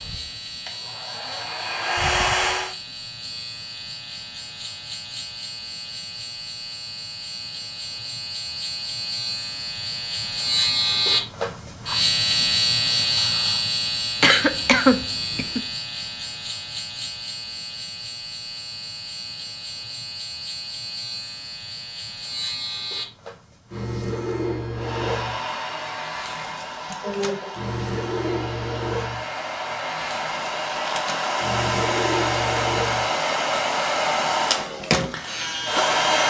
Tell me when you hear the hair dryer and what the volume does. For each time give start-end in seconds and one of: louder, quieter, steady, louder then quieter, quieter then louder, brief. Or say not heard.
0.0-2.8 brief
24.7-36.2 louder.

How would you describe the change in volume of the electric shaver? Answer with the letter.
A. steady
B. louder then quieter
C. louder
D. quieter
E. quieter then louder
B.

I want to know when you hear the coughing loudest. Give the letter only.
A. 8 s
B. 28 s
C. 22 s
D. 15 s
D.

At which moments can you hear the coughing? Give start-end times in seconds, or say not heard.
14.2-15.6, 26.9-27.5.